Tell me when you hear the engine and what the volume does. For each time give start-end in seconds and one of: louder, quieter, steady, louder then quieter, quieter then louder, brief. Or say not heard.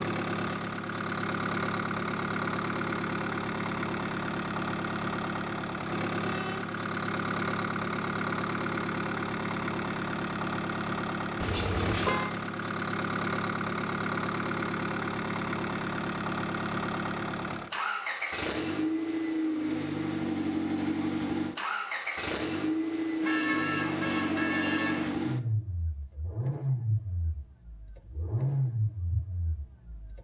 0.0-30.1 steady.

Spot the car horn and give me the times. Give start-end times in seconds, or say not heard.
6.2-6.8, 11.4-12.3, 23.2-25.2.